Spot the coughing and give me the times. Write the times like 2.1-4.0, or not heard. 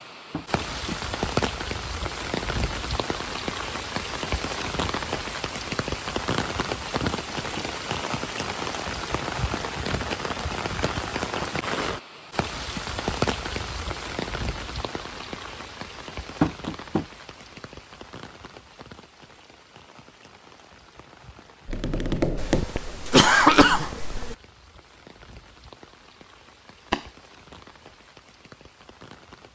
22.4-24.4.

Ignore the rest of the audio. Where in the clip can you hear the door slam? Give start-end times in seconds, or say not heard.
not heard.